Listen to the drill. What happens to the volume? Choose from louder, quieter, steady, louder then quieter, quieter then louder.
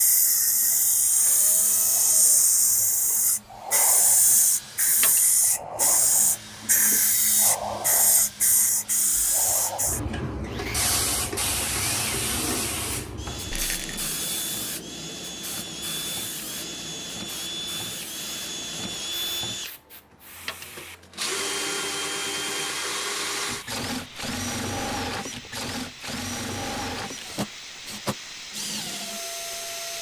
louder.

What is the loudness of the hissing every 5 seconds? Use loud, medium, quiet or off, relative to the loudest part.
loud, loud, medium, quiet, quiet, quiet.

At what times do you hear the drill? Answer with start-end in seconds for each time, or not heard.
0.0-29.9.